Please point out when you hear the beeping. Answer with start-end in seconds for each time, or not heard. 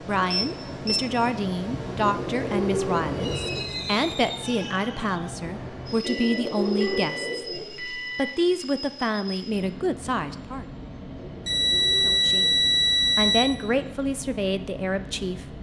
0.3-1.1, 6.0-8.3, 11.4-13.4.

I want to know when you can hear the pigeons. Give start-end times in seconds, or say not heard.
2.0-3.6, 6.0-7.7, 11.2-12.8.